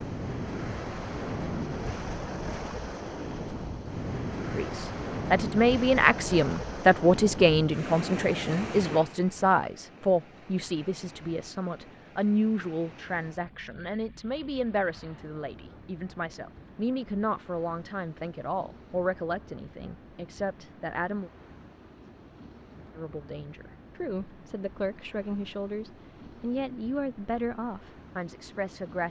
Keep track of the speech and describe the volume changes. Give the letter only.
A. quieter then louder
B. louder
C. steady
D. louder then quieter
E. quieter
E.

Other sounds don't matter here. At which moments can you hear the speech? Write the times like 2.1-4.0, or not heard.
4.5-21.3, 22.9-29.0.